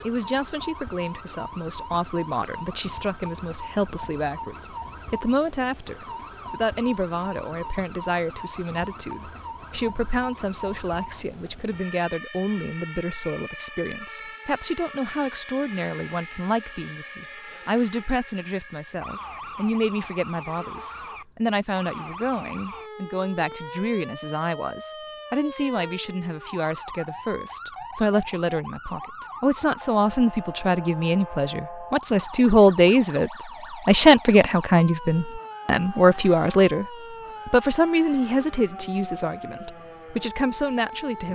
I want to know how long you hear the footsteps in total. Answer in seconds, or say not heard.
not heard.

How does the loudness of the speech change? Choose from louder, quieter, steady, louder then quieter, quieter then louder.
louder.